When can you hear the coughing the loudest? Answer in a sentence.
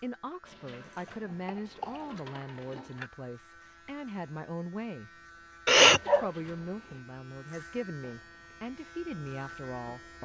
The loudest moment of the coughing is at 6 seconds.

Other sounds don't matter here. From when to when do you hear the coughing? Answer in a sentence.
You can hear the coughing from 1.1 to 3.1 s and from 5.7 to 6.3 s.